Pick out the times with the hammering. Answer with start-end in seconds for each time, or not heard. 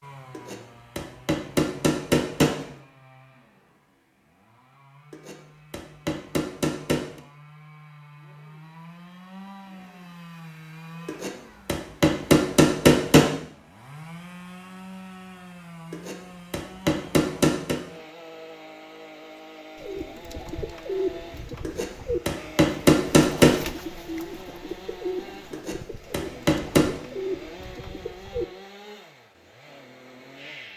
0.3-2.6, 5.1-7.2, 11.1-13.3, 15.9-17.8, 21.6-23.6, 25.5-26.9.